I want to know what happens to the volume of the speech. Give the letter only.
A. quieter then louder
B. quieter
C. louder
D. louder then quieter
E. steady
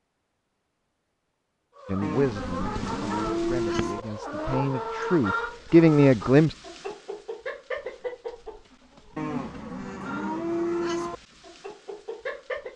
C.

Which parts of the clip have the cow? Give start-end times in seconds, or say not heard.
2.0-4.0, 9.2-11.2.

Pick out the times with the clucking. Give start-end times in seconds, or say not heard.
1.8-12.7.